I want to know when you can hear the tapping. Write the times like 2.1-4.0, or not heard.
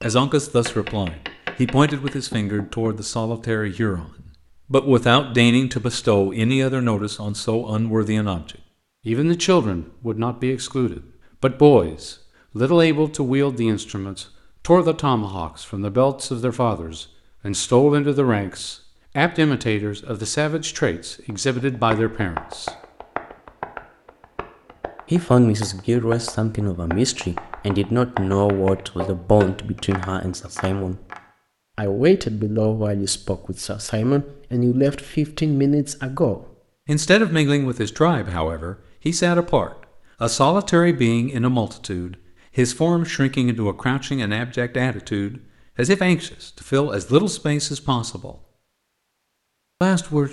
0.0-3.0, 21.3-31.2.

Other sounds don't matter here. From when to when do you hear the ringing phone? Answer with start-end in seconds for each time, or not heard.
not heard.